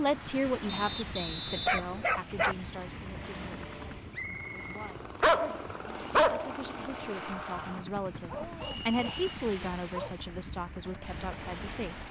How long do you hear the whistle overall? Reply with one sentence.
The whistle can be heard for 3 seconds in total.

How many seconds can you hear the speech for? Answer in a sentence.
The speech can be heard for 12 seconds in total.